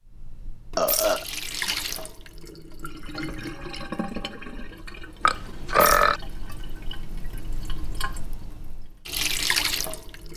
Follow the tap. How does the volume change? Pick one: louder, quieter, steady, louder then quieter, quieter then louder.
quieter then louder.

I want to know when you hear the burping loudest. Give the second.
6 s.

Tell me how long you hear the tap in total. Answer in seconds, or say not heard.
10 s.